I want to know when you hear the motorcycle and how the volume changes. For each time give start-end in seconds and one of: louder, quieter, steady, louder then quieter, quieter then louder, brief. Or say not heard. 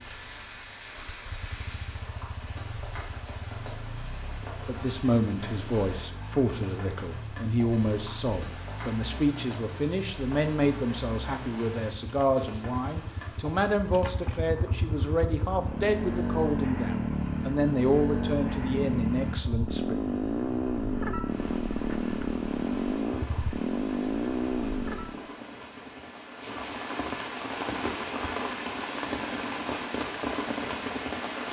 0.0-25.2 louder.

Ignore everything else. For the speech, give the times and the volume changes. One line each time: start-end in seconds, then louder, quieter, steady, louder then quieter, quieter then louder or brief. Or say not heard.
4.7-19.9 steady.